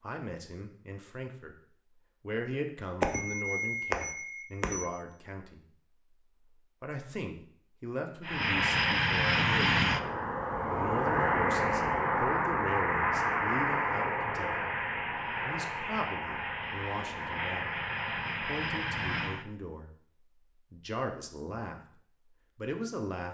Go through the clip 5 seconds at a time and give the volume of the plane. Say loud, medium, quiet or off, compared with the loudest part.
off, loud, loud, medium, off.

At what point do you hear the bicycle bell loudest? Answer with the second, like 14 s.
3 s.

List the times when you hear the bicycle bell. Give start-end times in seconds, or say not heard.
3.0-4.9.